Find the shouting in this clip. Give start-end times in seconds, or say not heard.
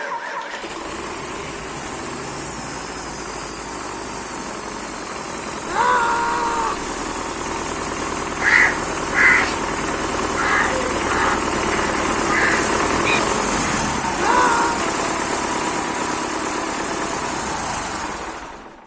5.7-6.8, 14.2-14.8.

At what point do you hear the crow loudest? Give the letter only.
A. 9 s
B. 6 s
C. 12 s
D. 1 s
A.